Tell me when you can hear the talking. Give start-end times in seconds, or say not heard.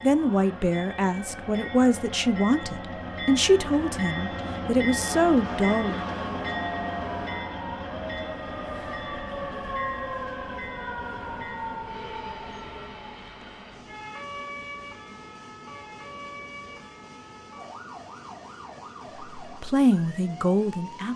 0.0-6.0, 19.4-21.1.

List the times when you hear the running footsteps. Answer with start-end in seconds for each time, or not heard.
not heard.